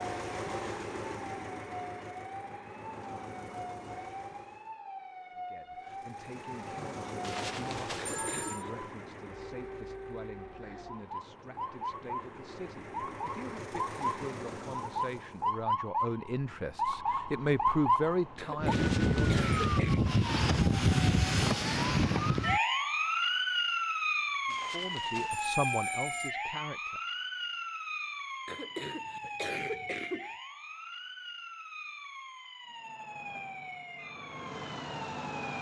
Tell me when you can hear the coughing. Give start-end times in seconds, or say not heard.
8.0-8.8, 18.4-20.1, 28.4-30.4.